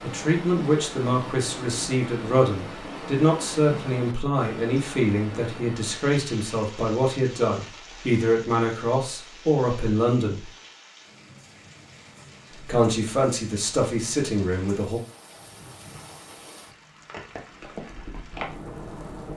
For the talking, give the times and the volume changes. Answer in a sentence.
You can hear the talking from 0.0 to 10.5 s, at a steady volume; and briefly from 12.7 to 15.0 s.